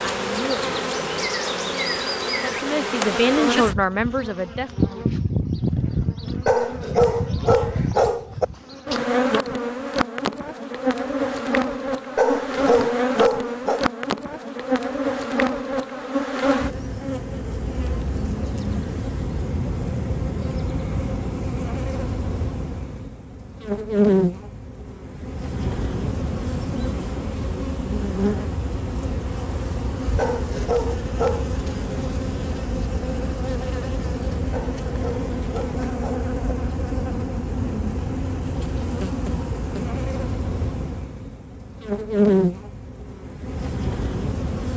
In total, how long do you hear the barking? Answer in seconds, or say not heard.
7 s.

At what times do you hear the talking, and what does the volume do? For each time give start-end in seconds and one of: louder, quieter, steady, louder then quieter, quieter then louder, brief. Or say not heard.
0.0-4.7 quieter then louder.